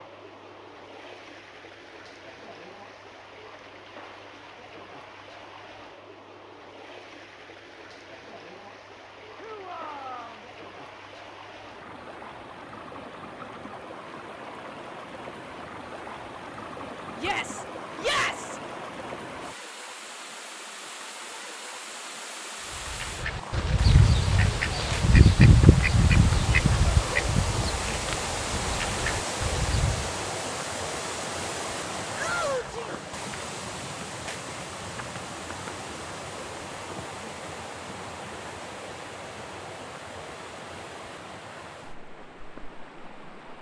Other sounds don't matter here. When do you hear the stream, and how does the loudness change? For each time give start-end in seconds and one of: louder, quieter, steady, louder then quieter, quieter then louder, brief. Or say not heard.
0.0-43.5 louder then quieter.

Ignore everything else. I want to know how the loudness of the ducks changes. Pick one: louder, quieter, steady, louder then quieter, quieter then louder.
louder then quieter.